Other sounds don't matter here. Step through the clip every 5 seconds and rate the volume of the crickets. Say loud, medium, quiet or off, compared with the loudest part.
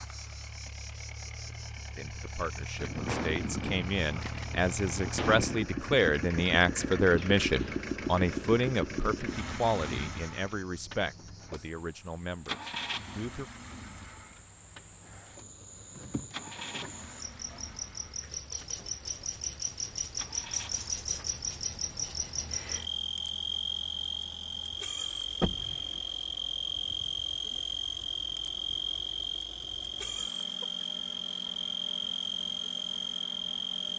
quiet, quiet, quiet, medium, loud, loud, loud.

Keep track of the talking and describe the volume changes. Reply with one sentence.
The volume of the talking goes up, then down.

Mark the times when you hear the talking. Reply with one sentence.
The talking can be heard from 1.9 to 13.5 s.